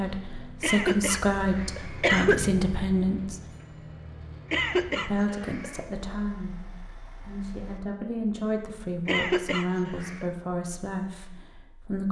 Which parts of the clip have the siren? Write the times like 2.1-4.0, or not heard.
not heard.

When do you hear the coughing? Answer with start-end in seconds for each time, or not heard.
0.6-2.4, 4.5-5.8, 9.1-10.2.